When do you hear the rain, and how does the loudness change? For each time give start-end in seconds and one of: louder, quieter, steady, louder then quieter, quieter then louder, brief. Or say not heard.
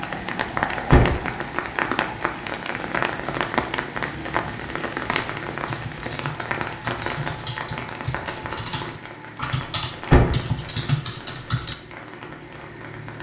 0.0-13.1 quieter.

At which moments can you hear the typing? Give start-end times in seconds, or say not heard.
5.0-11.8.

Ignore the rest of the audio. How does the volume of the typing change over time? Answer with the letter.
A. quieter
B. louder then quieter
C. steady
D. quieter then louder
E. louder
E.